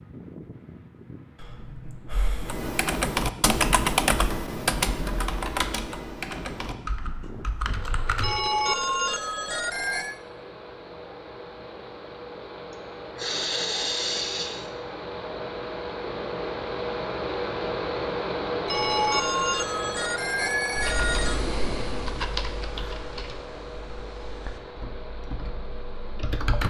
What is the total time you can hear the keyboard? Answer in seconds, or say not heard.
12 s.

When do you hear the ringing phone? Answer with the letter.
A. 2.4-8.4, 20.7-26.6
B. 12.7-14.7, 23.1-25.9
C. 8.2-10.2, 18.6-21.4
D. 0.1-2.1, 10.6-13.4
C.